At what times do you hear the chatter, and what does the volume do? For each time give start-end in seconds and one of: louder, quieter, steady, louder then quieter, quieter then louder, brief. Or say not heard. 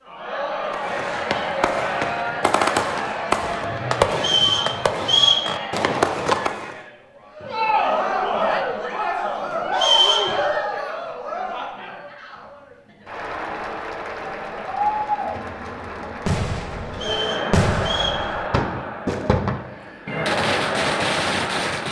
0.1-21.8 steady.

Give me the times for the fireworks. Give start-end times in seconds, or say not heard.
0.7-6.8, 16.2-21.8.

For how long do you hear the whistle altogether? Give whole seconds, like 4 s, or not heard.
3 s.